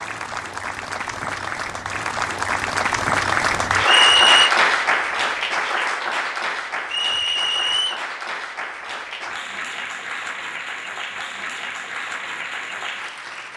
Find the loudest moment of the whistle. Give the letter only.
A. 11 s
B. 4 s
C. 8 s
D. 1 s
B.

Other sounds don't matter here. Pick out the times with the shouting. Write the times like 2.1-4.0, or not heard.
not heard.